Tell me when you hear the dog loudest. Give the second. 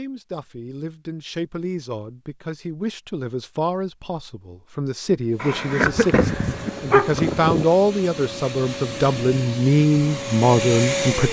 7 s.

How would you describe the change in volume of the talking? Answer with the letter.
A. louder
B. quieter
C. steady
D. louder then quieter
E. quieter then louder
A.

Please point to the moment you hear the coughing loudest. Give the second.
6 s.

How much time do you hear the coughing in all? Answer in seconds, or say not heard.
2 s.